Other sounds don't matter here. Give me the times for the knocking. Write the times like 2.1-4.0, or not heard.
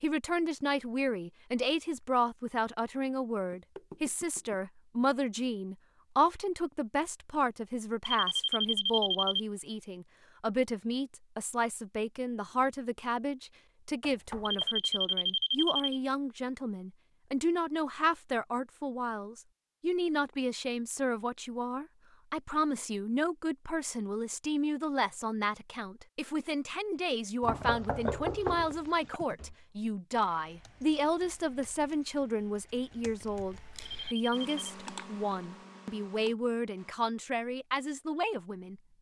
3.5-4.6, 14.0-14.8, 27.4-29.2.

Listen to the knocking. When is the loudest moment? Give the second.
28 s.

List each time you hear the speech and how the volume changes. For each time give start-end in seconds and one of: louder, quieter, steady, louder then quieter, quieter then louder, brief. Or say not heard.
0.0-38.8 steady.